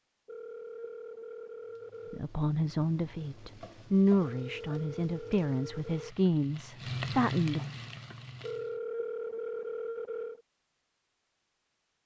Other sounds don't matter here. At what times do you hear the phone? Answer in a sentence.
You can hear the phone from 0.2 to 2.2 s, from 4.2 to 6.2 s and from 8.4 to 10.4 s.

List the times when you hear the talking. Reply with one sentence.
The talking can be heard from 2.1 to 7.6 s.